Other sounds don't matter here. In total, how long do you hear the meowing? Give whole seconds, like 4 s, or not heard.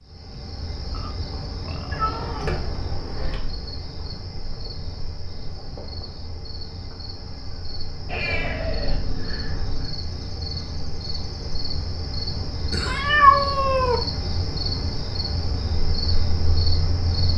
5 s.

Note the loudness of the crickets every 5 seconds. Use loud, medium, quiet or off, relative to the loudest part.
medium, medium, loud, loud.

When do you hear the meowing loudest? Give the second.
13 s.